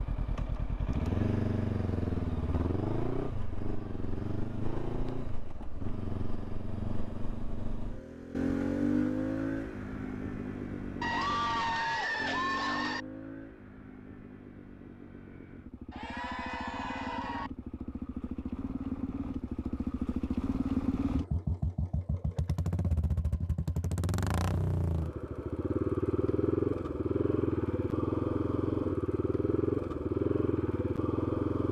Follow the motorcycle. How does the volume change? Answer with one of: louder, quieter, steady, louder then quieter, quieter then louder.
quieter then louder.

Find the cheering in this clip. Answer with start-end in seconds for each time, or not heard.
11.0-13.1, 15.9-17.5.